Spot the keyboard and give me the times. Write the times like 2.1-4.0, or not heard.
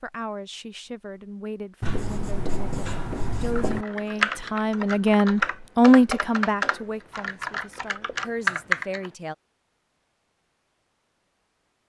3.5-9.1.